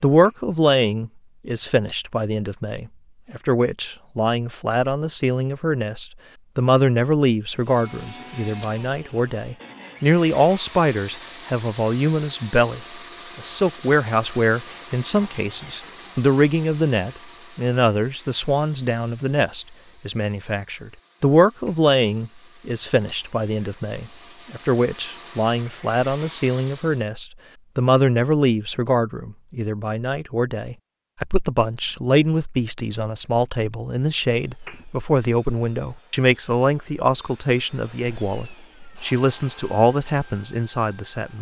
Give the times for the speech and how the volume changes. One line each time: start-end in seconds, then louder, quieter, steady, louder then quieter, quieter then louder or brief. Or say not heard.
0.0-41.3 steady.